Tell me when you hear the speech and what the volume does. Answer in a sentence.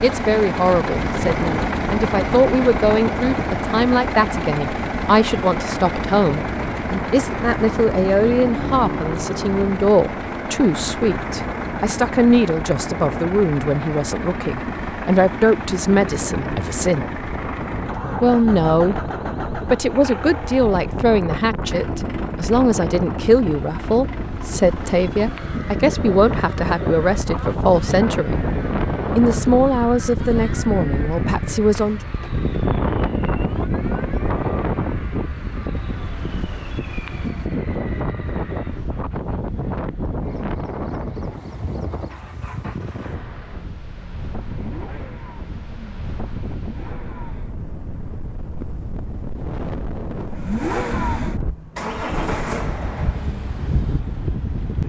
You can hear the speech from 0.0 to 17.1 s, at a steady volume; from 18.2 to 28.4 s, at a steady volume; and briefly from 29.1 to 32.0 s.